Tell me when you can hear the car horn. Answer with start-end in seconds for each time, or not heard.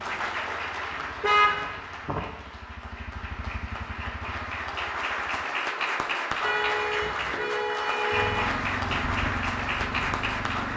0.9-2.2, 6.4-8.4.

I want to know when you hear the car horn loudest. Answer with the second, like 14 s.
1 s.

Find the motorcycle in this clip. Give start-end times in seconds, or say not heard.
0.0-5.5, 8.1-10.7.